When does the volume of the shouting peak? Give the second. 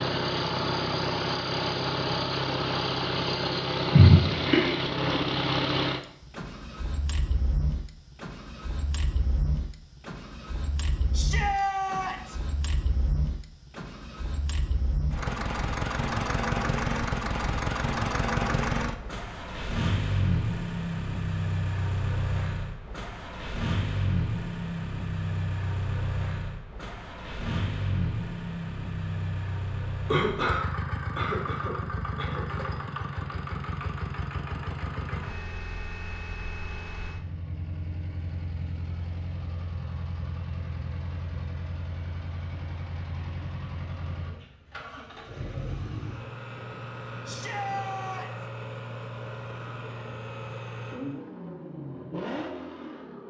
12 s.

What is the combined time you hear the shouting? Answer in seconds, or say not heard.
2 s.